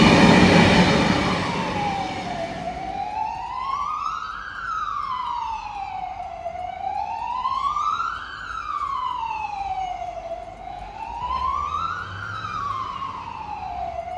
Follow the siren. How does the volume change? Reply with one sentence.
The loudness of the siren stays about the same.